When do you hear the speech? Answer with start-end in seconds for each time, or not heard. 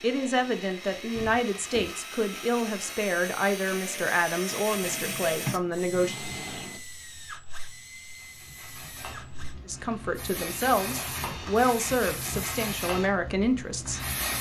0.0-6.2, 9.7-14.0.